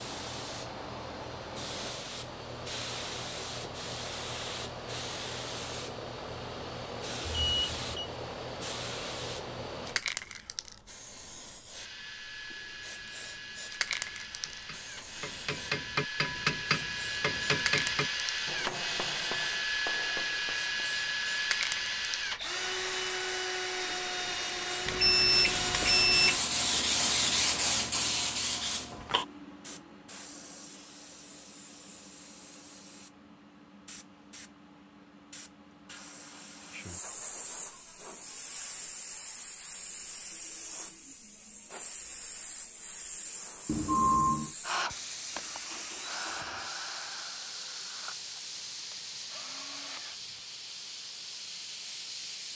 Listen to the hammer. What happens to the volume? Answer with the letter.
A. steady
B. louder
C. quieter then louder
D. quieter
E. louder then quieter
D.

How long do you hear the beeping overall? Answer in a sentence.
You can hear the beeping for 3 seconds altogether.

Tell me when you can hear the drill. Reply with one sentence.
The drill can be heard from 11.7 to 26.4 s and from 44.6 to 50.5 s.